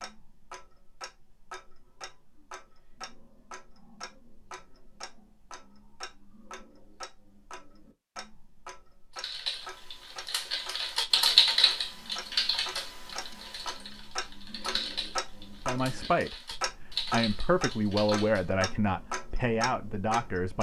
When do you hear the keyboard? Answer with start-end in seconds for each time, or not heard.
9.2-18.4.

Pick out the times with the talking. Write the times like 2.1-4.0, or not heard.
15.7-20.5.